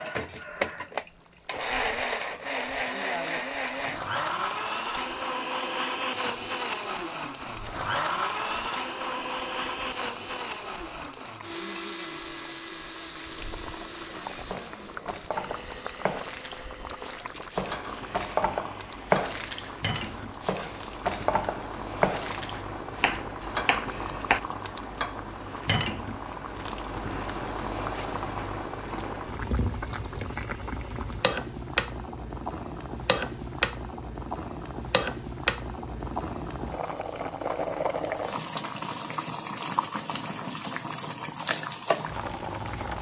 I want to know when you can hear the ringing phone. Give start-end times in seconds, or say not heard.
not heard.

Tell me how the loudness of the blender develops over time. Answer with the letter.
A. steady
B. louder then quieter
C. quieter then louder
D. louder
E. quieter
E.